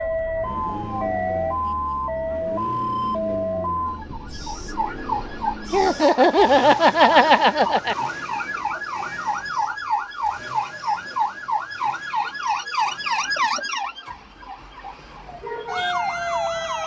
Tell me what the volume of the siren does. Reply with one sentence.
The loudness of the siren stays about the same.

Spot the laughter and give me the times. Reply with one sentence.
You can hear the laughter from 5.7 to 8.0 s.